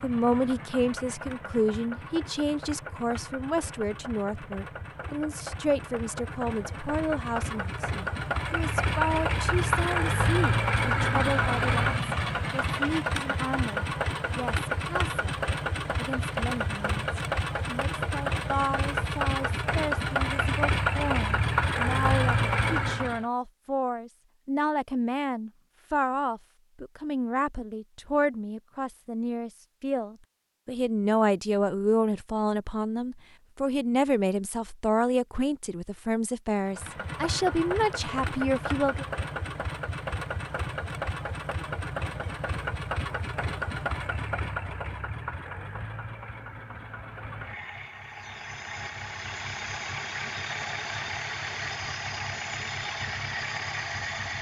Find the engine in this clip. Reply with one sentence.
The engine can be heard from 0.0 to 23.2 s and from 36.6 to 54.3 s.